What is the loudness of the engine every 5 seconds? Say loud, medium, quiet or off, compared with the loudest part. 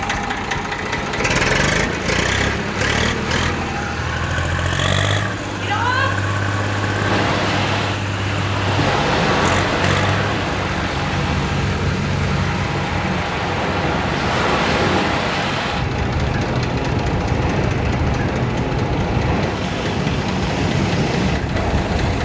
loud, loud, medium, medium, medium.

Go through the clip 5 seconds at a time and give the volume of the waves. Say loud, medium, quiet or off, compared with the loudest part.
medium, loud, loud, loud, loud.